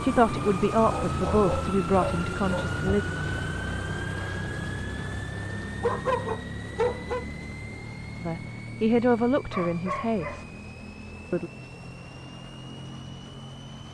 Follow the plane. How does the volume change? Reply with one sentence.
The volume of the plane goes down.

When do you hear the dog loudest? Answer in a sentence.
The volume of the dog peaks at 6 seconds.